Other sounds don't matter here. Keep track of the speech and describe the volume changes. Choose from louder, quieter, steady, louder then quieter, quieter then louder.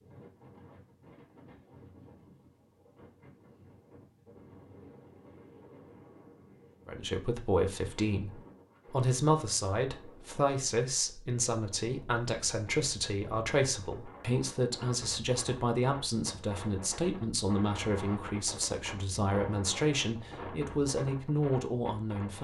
steady.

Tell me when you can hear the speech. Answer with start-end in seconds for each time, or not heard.
6.8-22.3.